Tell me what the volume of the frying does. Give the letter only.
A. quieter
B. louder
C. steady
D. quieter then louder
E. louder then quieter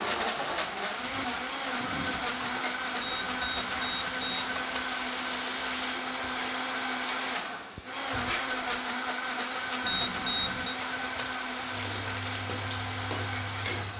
C.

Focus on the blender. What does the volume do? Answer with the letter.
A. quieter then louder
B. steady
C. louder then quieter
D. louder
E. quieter
B.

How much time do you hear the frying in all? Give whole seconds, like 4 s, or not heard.
14 s.